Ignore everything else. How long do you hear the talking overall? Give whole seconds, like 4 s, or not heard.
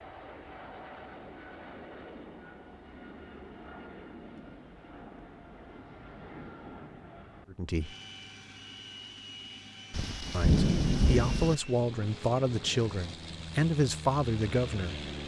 5 s.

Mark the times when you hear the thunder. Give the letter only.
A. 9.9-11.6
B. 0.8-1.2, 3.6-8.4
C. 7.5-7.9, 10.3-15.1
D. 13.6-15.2
A.